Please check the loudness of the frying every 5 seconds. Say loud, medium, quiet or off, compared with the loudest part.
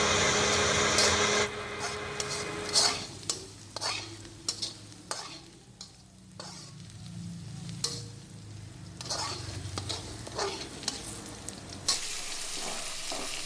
loud, medium, loud.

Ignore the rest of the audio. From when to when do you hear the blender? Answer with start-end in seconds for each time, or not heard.
0.0-3.1.